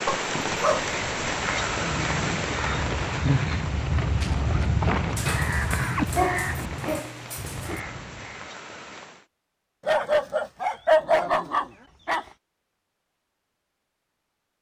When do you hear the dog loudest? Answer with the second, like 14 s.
11 s.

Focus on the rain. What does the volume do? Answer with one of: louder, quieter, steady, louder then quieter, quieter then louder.
quieter.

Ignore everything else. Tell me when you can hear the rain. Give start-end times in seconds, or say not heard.
0.0-9.2.